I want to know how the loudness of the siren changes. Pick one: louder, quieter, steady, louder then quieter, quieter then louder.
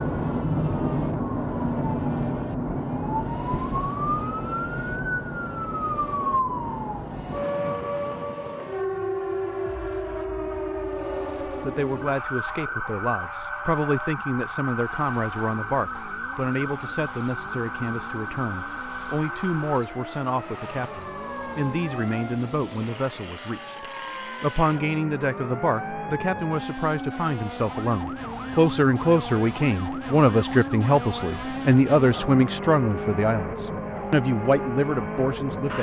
quieter.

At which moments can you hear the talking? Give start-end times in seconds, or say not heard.
11.4-35.7.